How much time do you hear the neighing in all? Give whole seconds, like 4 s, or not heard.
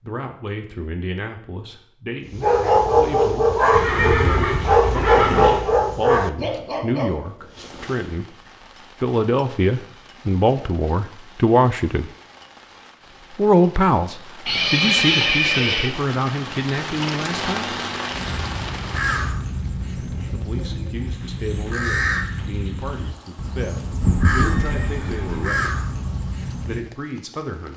5 s.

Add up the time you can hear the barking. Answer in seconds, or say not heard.
6 s.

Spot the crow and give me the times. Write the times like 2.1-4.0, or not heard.
18.1-26.9.